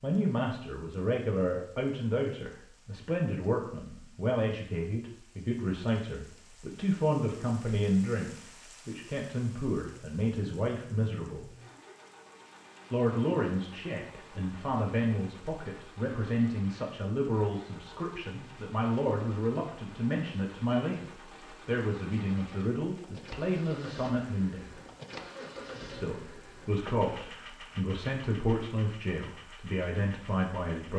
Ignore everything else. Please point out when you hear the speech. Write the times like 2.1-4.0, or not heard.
0.0-11.4, 12.9-24.8, 25.9-30.9.